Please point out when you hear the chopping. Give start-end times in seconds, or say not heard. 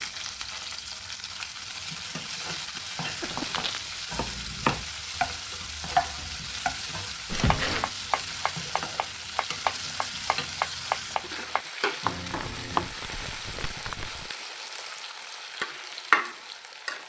3.2-12.9.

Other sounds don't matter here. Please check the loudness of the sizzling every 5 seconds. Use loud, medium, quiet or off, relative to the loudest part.
medium, medium, medium, loud.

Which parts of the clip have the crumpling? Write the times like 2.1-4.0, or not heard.
3.1-3.9, 7.2-8.0, 12.3-14.3.